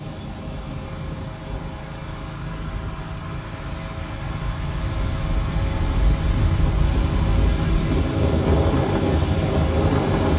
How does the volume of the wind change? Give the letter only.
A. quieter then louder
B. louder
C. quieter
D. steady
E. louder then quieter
B.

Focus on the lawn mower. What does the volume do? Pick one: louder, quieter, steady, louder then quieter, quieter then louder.
louder.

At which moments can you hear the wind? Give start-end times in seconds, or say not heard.
0.0-10.3.